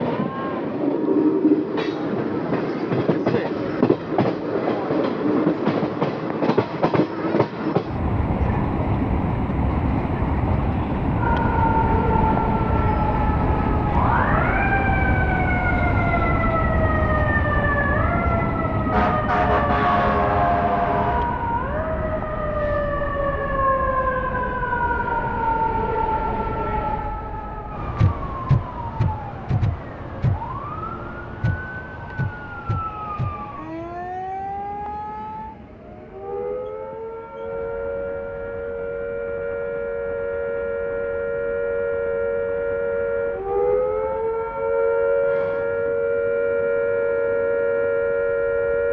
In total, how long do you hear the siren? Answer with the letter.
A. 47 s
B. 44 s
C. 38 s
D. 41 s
C.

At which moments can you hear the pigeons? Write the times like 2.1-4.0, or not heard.
not heard.